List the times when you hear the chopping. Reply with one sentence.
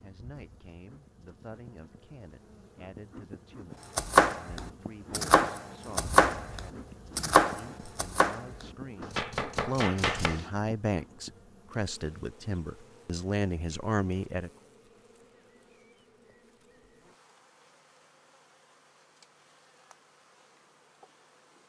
The chopping can be heard from 4.0 to 10.4 s.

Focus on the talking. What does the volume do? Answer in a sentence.
The volume of the talking goes up.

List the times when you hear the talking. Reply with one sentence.
You can hear the talking from 0.0 to 14.5 s.